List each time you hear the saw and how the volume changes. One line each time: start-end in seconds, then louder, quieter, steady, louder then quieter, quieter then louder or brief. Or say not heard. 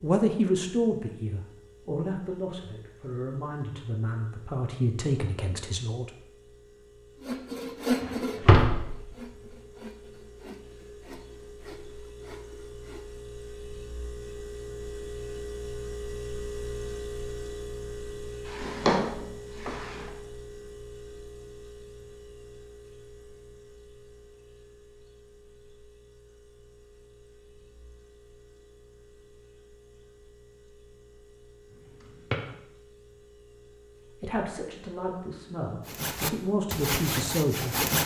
7.2-13.2 quieter
35.9-38.0 brief.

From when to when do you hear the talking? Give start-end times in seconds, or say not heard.
0.0-6.1, 34.2-37.9.